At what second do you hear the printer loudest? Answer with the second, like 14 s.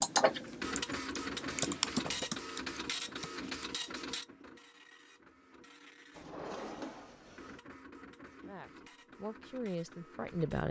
1 s.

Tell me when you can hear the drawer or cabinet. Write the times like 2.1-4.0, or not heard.
1.2-3.2, 6.2-7.6.